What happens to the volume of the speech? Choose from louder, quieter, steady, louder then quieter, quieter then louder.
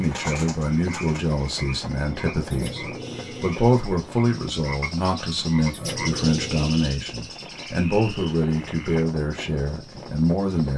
steady.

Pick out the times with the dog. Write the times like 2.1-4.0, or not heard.
2.5-3.7, 5.7-6.8.